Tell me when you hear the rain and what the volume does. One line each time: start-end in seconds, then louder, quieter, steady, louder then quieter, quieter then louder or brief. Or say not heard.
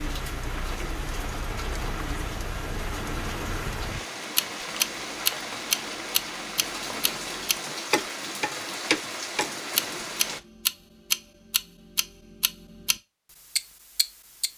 0.0-10.4 steady.